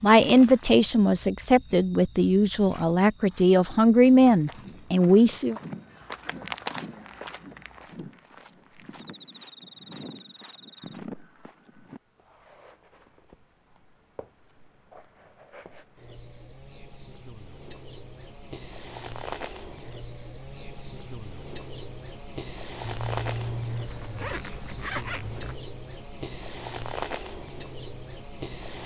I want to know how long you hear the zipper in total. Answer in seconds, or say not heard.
3 s.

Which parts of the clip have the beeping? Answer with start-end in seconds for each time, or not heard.
not heard.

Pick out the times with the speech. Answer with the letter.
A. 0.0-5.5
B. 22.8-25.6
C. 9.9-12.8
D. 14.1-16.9
A.